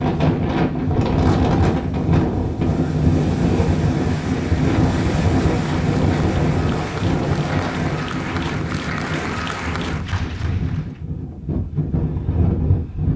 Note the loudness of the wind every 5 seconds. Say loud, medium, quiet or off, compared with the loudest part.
loud, loud, medium.